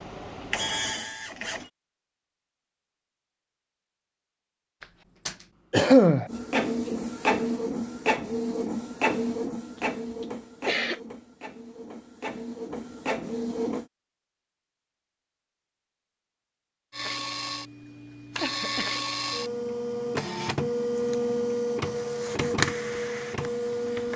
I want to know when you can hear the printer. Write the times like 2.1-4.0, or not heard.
0.0-1.7, 6.2-13.8, 16.9-24.1.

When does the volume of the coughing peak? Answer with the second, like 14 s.
6 s.